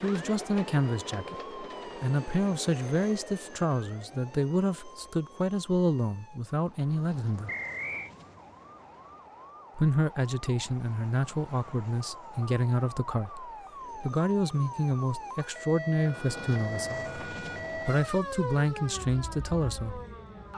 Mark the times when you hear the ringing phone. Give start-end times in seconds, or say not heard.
not heard.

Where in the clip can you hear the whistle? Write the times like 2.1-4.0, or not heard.
7.5-8.1.